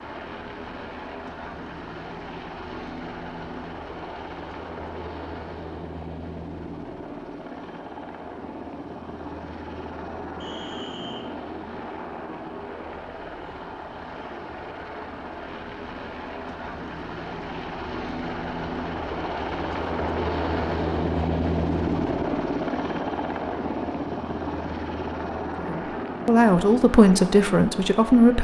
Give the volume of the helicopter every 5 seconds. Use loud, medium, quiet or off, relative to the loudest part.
medium, medium, medium, medium, loud, medium.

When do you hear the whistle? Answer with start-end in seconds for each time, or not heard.
10.4-11.2.